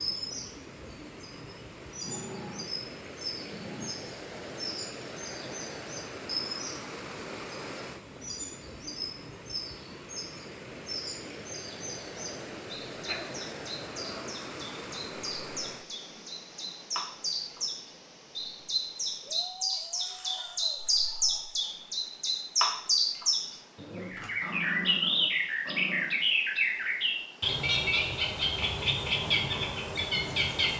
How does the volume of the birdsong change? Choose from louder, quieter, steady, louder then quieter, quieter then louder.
louder.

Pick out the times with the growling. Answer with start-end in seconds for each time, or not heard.
1.9-4.0, 13.1-14.3, 23.8-26.2.